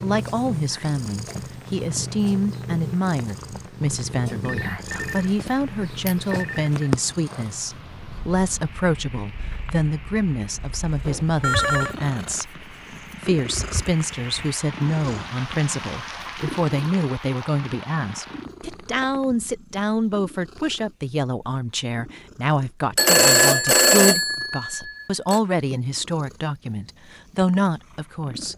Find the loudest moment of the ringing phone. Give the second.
23 s.